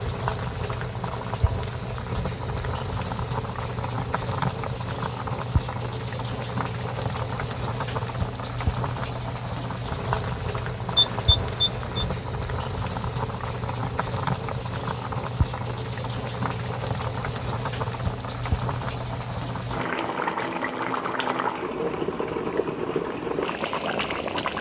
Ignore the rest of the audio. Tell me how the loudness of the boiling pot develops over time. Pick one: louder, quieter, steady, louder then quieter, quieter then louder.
steady.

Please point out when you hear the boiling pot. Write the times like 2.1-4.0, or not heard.
0.0-24.5.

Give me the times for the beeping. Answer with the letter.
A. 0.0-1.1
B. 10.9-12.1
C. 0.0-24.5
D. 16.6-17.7
B.